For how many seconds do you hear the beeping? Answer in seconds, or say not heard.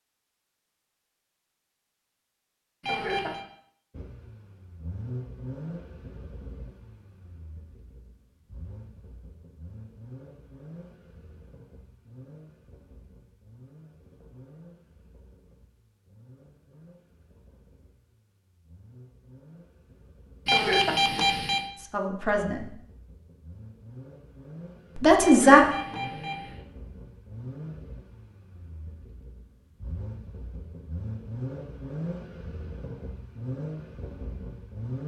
3 s.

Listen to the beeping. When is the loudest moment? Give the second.
21 s.